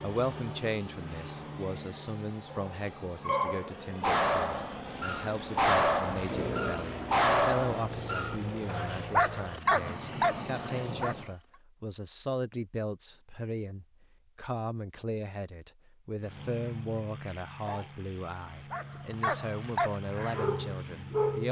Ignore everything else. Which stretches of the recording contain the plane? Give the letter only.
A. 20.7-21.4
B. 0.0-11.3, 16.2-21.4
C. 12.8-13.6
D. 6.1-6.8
B.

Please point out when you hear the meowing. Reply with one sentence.
The meowing can be heard from 6.1 to 6.8 s.